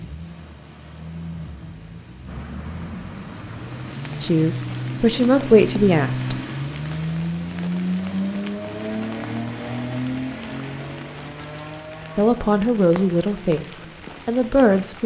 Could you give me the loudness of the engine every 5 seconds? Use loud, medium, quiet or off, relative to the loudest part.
medium, loud, medium.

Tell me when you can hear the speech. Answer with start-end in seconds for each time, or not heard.
4.2-6.3, 12.2-15.0.